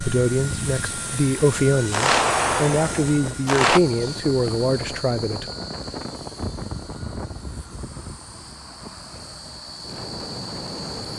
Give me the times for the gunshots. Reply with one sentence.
You can hear the gunshots from 1.9 to 3.8 s.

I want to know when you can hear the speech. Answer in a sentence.
You can hear the speech from 0.0 to 5.5 s.